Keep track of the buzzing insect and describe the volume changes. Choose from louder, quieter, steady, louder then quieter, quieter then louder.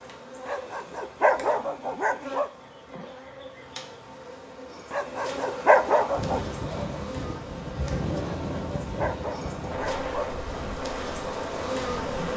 louder.